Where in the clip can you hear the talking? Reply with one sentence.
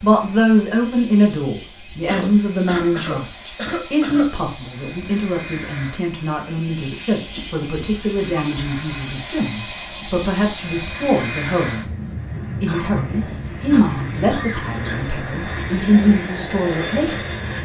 The talking can be heard from 0.0 to 11.8 s and from 12.6 to 17.2 s.